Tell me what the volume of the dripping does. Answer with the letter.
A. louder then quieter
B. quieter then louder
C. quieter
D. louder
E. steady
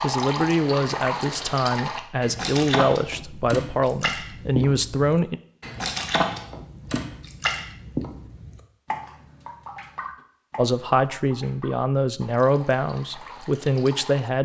C.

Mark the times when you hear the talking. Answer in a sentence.
You can hear the talking from 0.0 to 5.4 s and from 10.6 to 14.4 s.